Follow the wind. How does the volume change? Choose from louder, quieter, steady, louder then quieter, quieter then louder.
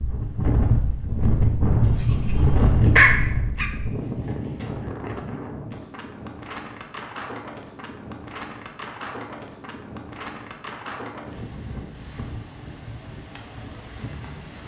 quieter.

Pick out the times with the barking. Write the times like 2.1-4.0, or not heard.
1.8-3.7.